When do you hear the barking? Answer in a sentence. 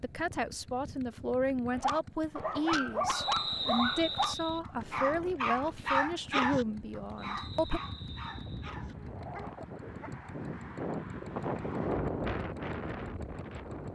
You can hear the barking from 1.7 to 10.1 s.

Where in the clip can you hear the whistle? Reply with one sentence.
The whistle can be heard from 3.1 to 4.6 s and from 7.2 to 8.7 s.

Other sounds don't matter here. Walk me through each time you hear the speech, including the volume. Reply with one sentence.
You can hear the speech from 0.0 to 7.8 s, at a steady volume.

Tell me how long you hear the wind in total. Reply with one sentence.
The wind can be heard for 9 seconds in total.